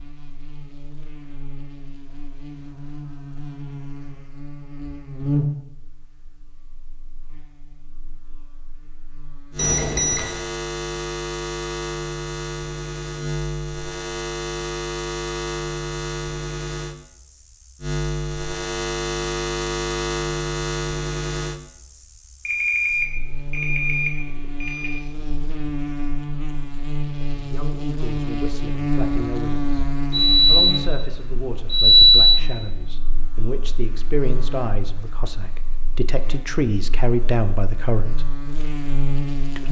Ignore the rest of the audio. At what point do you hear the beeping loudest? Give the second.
32 s.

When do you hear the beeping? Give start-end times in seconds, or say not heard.
9.6-10.4, 22.4-25.0, 30.1-32.4.